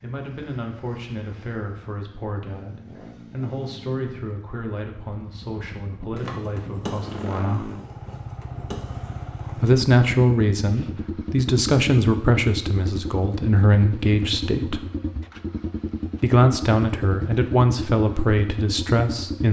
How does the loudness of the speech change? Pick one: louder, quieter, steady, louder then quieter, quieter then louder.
louder.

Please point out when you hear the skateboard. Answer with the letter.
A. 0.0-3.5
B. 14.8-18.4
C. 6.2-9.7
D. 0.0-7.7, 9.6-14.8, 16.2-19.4
C.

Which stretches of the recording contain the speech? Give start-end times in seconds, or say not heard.
0.0-7.7, 9.6-14.8, 16.2-19.4.